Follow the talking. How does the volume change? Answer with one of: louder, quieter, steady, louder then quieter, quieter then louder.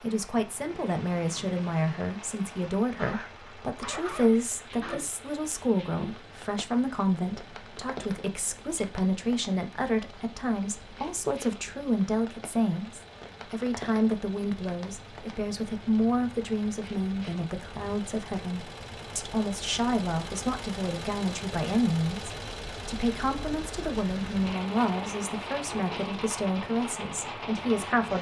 steady.